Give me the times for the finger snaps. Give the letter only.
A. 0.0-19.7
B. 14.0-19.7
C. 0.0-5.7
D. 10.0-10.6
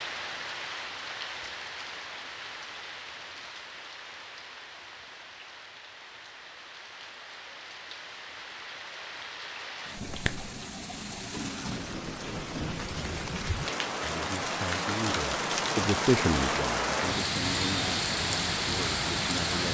D.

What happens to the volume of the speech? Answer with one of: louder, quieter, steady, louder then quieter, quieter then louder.
louder then quieter.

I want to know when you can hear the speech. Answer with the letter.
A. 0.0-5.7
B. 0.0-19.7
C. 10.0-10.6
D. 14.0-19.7
D.